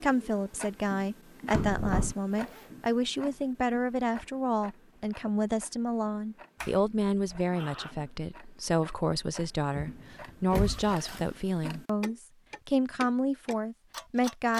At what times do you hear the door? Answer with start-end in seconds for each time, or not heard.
1.5-2.1, 6.6-7.4, 9.8-10.9.